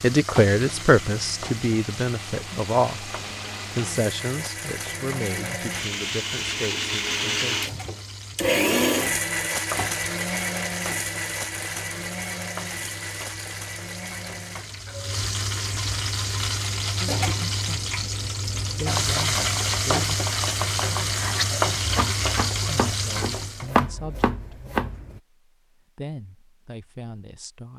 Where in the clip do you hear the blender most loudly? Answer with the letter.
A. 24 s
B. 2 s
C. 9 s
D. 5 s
C.